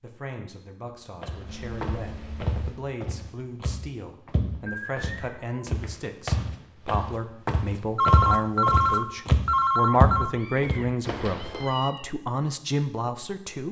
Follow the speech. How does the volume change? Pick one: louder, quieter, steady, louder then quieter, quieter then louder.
louder.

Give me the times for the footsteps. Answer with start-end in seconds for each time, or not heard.
1.2-11.7.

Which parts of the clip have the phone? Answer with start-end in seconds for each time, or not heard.
8.0-10.3.